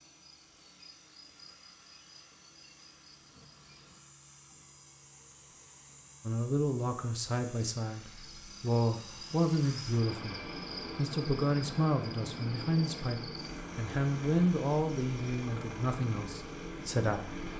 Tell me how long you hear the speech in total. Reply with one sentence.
You can hear the speech for 11 seconds altogether.